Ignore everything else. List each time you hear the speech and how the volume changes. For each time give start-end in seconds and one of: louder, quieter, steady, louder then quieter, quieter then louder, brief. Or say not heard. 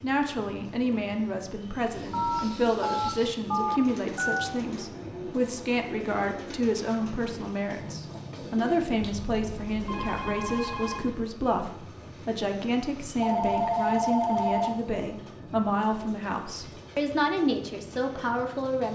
0.0-18.9 steady.